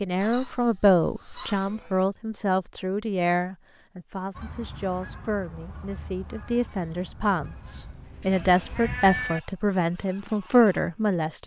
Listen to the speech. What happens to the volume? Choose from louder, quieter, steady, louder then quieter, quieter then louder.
quieter then louder.